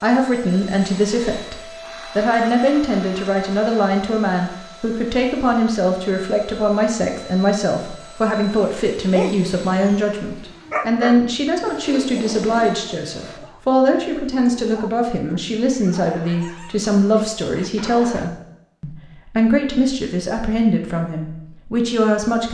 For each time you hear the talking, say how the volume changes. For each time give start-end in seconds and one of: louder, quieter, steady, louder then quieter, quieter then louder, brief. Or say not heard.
0.0-1.6 brief
2.1-22.5 steady.